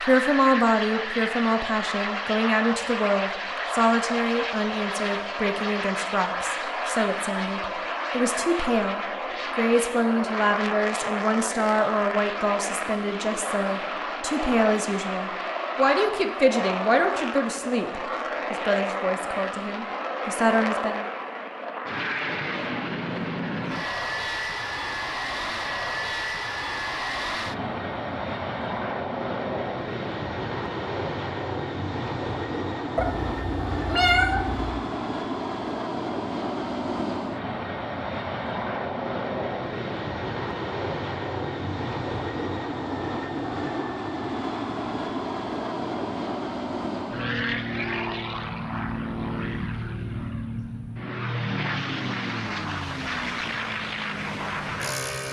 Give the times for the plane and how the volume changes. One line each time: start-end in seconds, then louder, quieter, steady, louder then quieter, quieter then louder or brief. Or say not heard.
0.0-55.2 steady.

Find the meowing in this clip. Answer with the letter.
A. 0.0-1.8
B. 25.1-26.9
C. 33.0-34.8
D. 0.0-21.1
C.